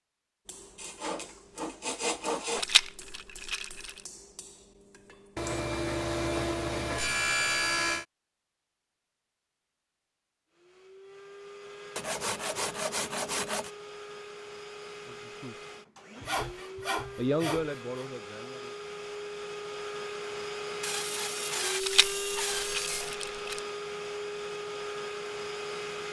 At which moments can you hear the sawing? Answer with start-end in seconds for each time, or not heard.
0.8-2.6, 5.3-8.1, 11.9-13.7, 16.2-17.8, 20.8-23.1.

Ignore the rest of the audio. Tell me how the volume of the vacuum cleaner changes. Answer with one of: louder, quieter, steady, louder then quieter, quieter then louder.
louder.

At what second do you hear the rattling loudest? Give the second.
3 s.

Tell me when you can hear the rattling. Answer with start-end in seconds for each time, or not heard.
2.5-4.0, 21.8-23.6.